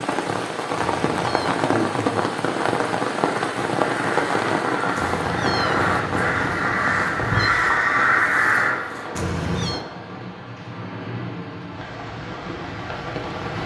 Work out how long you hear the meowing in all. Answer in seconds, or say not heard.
4 s.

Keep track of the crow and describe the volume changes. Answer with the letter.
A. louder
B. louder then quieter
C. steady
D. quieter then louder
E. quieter
A.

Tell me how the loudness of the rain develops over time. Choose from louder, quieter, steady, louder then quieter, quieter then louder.
quieter.